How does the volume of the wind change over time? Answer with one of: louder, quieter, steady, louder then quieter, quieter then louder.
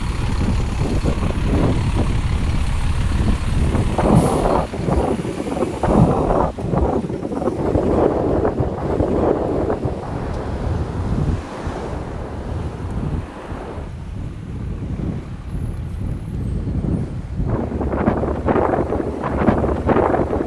quieter then louder.